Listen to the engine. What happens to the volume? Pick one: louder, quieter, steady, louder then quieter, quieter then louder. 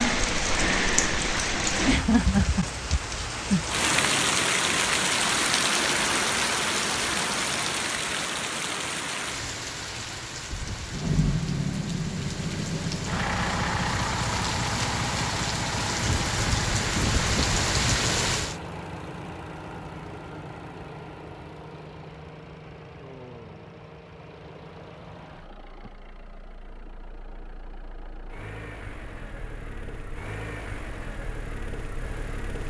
quieter then louder.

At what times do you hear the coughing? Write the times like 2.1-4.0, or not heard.
not heard.